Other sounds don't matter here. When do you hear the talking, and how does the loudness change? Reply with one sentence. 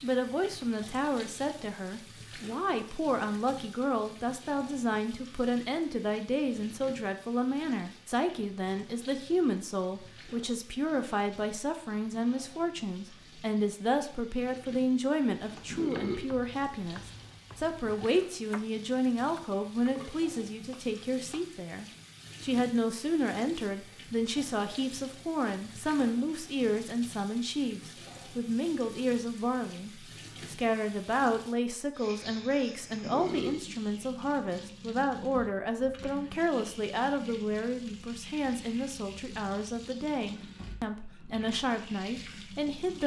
The talking can be heard from 0.0 to 43.0 s, at a steady volume.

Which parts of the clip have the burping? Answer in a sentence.
You can hear the burping from 15.7 to 16.2 s and from 33.0 to 33.6 s.